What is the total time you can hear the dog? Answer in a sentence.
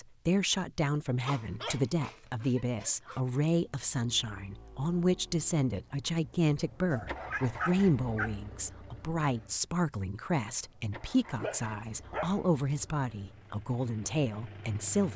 You can hear the dog for 5 seconds altogether.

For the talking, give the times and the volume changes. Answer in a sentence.
The talking can be heard from 0.0 to 15.1 s, at a steady volume.